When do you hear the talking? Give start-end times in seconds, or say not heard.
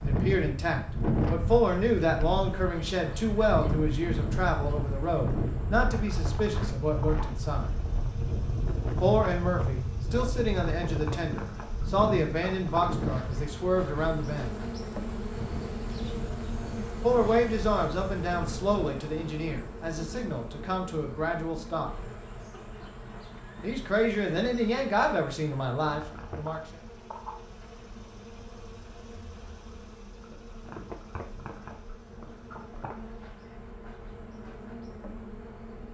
0.0-7.8, 9.0-14.6, 17.0-21.9, 23.6-26.6.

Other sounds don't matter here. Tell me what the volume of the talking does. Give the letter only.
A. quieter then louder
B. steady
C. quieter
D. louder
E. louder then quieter
B.